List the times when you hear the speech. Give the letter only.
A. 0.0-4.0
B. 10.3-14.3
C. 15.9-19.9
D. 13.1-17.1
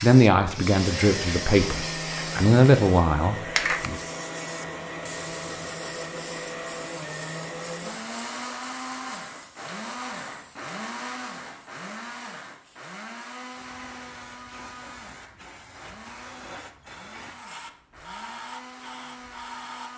A.